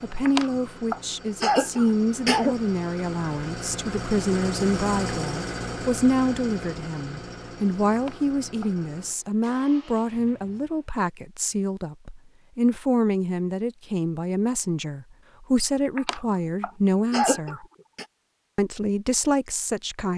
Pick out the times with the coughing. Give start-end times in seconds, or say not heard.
0.2-2.5, 8.0-8.7, 15.9-18.1.